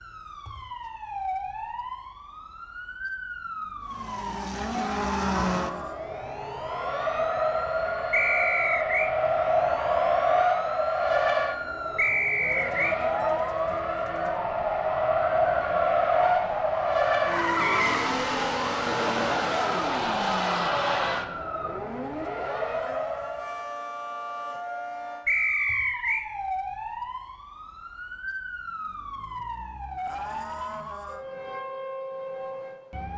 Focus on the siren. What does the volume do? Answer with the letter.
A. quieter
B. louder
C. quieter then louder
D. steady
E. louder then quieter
D.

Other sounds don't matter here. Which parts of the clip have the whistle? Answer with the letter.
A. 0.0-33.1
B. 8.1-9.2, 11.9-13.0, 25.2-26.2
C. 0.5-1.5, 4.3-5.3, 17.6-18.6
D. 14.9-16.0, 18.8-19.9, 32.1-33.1
B.